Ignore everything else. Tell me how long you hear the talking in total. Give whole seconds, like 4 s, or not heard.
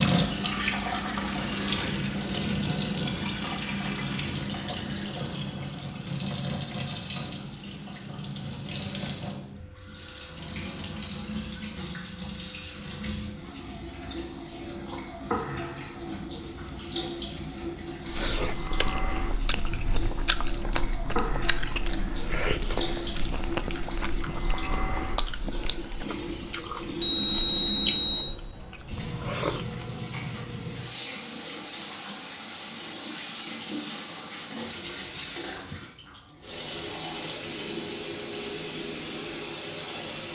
not heard.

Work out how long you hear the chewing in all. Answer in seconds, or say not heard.
12 s.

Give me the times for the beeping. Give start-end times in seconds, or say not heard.
27.0-28.4.